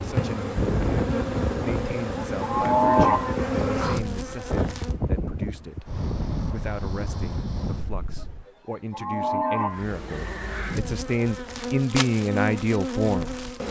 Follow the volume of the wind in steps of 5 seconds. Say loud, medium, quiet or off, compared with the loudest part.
loud, loud, off.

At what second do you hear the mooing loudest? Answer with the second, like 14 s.
3 s.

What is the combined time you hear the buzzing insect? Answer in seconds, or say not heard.
9 s.